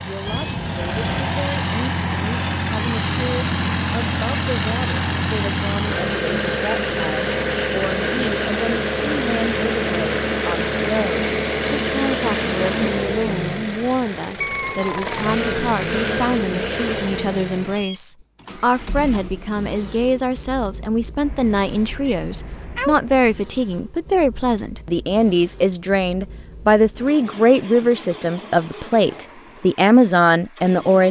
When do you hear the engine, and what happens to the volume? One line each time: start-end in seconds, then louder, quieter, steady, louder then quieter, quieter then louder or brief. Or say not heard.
0.0-31.0 quieter.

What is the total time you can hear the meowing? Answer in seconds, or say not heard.
4 s.